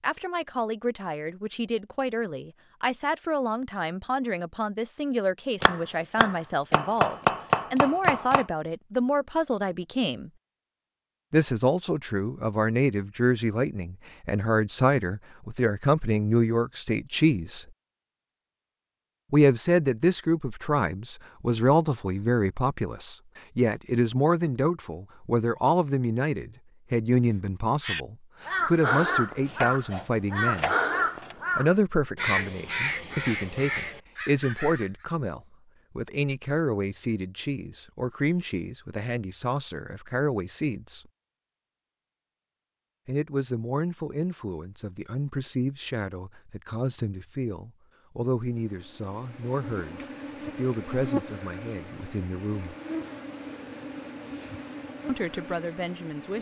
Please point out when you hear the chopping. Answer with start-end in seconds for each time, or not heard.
5.6-8.4, 29.4-31.4.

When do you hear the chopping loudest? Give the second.
7 s.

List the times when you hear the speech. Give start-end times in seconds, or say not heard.
0.0-10.3, 11.3-17.6, 19.3-30.8, 31.6-41.0, 43.0-52.8, 55.0-56.3.